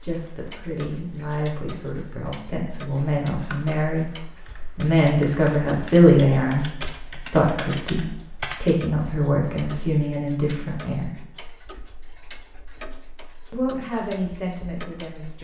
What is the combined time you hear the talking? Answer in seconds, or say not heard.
13 s.